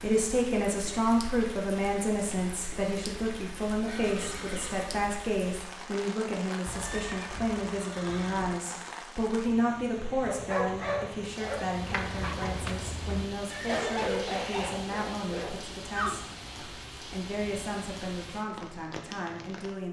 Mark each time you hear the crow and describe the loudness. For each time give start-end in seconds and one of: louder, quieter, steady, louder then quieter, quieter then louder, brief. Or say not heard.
not heard.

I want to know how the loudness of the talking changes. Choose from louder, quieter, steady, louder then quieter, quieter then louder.
quieter.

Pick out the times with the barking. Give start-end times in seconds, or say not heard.
10.2-16.4.